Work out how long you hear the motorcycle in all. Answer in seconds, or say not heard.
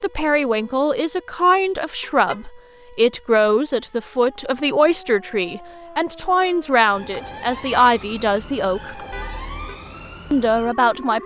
not heard.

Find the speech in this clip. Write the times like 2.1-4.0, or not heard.
0.0-8.9, 10.3-11.2.